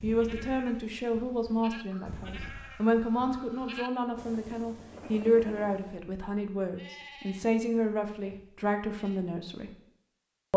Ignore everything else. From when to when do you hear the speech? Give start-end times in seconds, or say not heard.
0.0-9.8.